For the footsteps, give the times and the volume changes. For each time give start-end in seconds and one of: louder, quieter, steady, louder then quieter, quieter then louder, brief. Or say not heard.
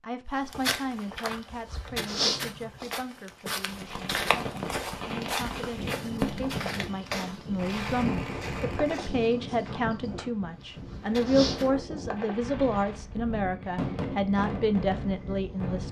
0.5-11.7 quieter.